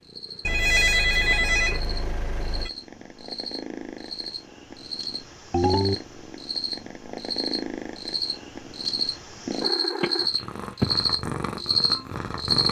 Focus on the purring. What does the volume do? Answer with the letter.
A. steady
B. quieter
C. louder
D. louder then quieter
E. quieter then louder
C.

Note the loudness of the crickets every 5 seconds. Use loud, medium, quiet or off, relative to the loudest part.
quiet, medium, loud.